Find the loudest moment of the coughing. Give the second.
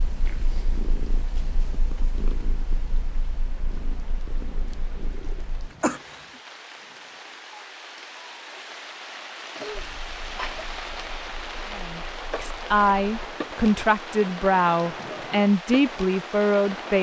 6 s.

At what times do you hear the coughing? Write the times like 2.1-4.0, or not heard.
5.8-6.2, 9.6-10.7.